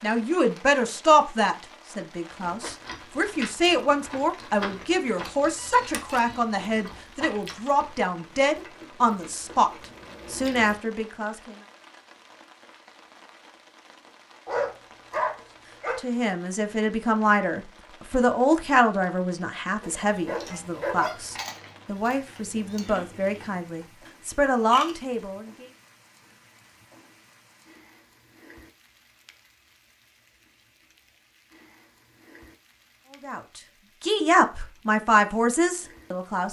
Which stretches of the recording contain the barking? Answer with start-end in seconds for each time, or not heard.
14.4-16.0, 19.8-21.4.